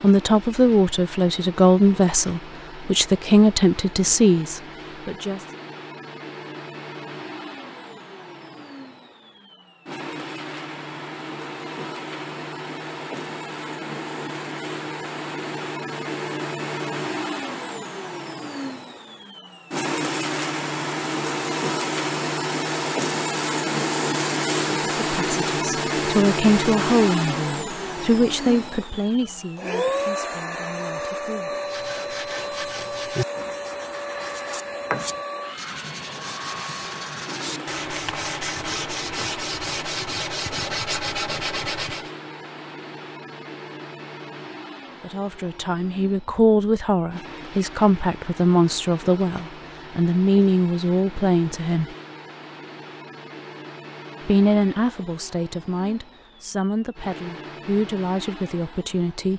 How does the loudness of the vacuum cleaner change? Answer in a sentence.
The volume of the vacuum cleaner goes up, then down.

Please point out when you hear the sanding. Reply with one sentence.
You can hear the sanding from 31.6 to 42.1 s.